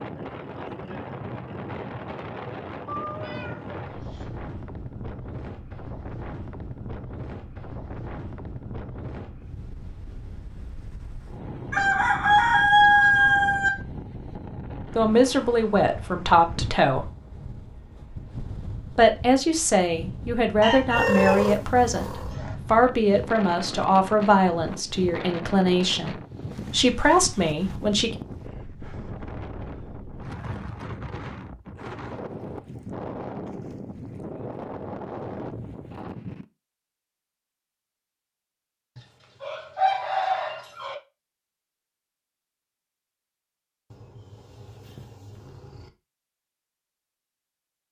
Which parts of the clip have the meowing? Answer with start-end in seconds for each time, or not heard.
2.9-4.3, 20.9-22.4, 43.9-45.9.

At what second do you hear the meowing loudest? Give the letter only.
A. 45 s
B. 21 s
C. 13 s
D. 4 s
B.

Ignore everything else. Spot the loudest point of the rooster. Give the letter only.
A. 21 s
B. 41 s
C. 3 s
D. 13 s
D.